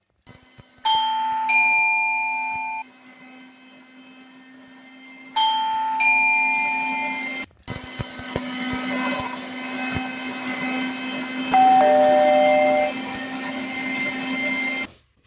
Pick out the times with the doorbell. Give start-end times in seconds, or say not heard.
0.8-2.9, 5.3-7.2, 11.5-12.9.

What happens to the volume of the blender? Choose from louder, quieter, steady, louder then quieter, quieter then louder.
louder.